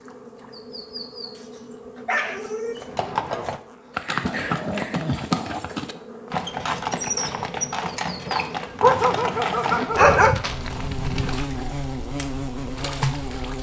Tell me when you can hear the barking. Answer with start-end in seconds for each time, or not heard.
1.4-2.9, 8.8-10.3.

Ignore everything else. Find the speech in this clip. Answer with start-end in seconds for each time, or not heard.
not heard.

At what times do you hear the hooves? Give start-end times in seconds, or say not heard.
2.8-11.4.